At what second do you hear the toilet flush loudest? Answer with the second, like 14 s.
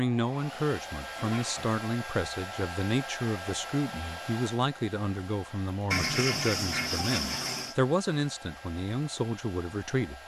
6 s.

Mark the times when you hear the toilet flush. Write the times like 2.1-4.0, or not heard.
1.1-1.8, 5.9-7.8.